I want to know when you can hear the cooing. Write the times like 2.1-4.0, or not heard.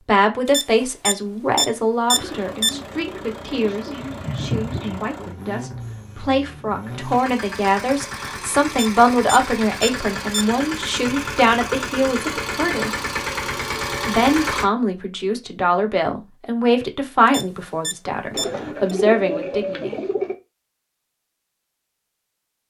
2.1-5.1, 18.3-20.4.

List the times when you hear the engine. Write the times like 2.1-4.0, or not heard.
2.1-14.7.